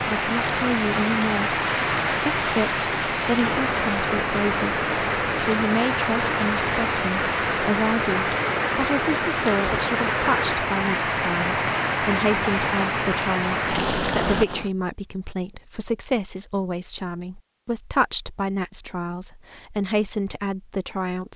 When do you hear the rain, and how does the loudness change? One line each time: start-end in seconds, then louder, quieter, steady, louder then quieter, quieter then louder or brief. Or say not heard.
0.0-14.7 steady.